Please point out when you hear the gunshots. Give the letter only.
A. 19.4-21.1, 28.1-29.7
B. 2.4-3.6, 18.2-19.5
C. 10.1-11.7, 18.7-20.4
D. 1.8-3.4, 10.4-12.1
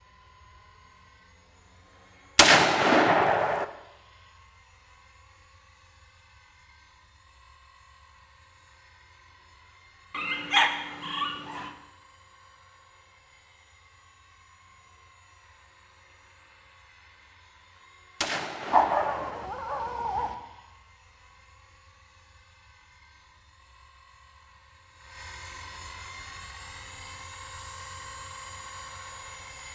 B.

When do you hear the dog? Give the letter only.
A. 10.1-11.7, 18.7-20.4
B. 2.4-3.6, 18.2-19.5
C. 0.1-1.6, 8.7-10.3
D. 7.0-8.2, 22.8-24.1
A.